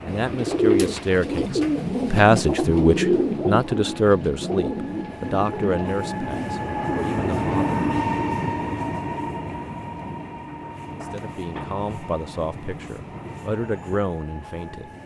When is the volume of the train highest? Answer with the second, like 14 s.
8 s.